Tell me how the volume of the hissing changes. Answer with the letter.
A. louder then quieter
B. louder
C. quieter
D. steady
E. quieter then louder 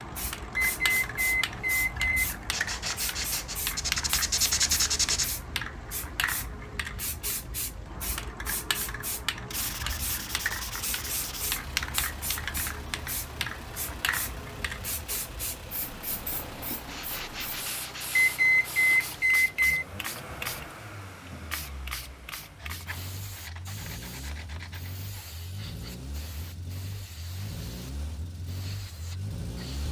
C.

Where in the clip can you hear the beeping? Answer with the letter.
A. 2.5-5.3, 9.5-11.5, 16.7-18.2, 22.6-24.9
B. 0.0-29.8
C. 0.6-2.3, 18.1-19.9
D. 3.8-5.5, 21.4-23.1
C.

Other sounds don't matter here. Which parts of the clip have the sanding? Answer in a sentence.
You can hear the sanding from 2.5 to 5.3 s, from 9.5 to 11.5 s, from 16.7 to 18.2 s and from 22.6 to 24.9 s.